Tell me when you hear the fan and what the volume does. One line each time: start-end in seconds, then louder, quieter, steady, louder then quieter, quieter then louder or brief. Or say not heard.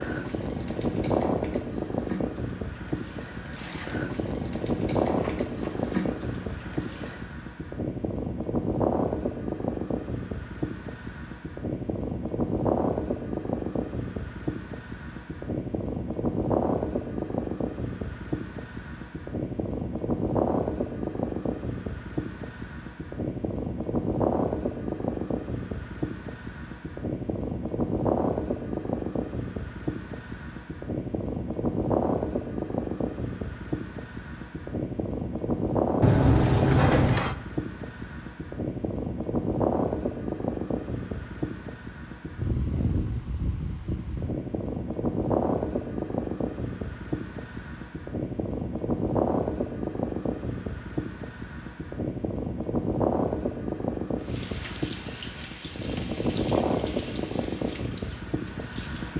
0.0-59.1 steady.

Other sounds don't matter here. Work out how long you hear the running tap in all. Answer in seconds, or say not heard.
12 s.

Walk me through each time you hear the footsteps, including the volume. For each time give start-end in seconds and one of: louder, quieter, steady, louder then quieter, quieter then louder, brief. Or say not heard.
not heard.